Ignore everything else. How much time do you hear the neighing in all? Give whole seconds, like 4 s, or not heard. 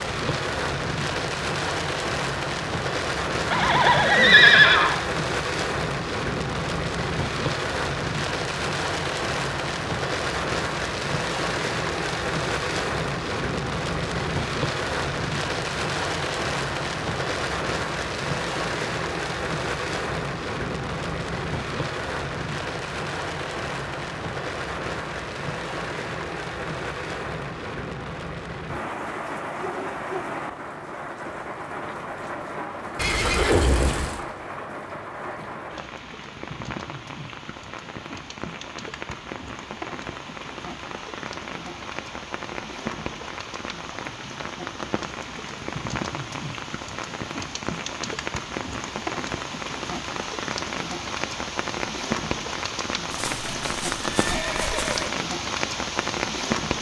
5 s.